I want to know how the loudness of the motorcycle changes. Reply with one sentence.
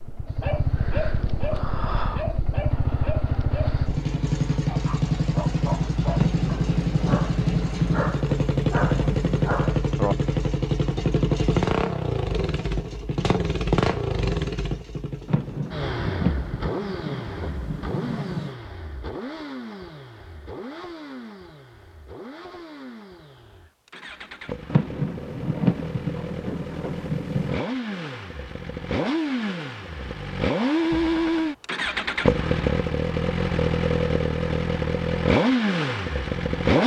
The volume of the motorcycle goes down, then up.